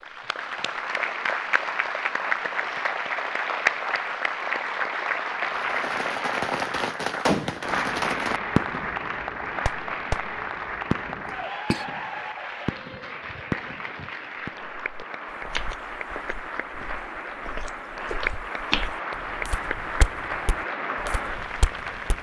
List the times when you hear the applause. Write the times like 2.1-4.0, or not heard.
0.0-22.1.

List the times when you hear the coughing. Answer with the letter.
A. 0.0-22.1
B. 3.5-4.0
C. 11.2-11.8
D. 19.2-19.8
C.